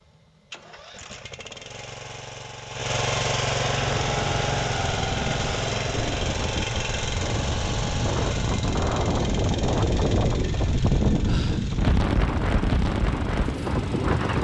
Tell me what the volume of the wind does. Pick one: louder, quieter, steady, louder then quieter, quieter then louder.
louder.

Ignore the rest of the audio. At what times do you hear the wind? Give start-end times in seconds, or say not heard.
3.8-14.3.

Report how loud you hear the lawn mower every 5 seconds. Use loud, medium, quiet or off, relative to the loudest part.
loud, loud, medium.